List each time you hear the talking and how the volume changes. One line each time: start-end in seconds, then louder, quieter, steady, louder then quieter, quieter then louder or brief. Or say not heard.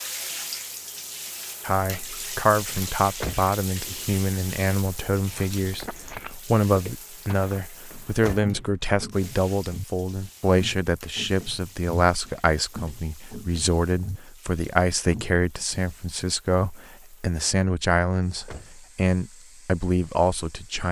1.6-20.8 steady.